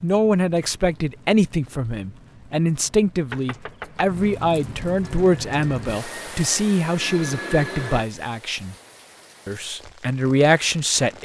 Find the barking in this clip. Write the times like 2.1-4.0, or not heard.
not heard.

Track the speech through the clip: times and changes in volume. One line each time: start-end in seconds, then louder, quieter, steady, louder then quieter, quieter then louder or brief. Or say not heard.
0.0-8.8 steady
9.4-11.2 brief.